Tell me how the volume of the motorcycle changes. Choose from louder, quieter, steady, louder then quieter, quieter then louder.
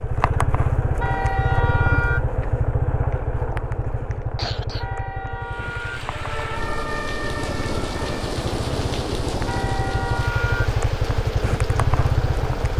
quieter then louder.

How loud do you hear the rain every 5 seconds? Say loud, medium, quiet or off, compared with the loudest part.
off, loud, medium.